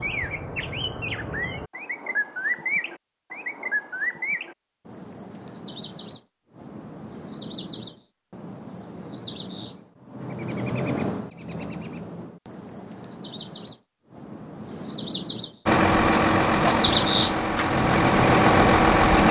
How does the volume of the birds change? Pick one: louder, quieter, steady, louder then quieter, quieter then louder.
louder.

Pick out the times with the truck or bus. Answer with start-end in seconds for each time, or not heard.
15.7-19.2.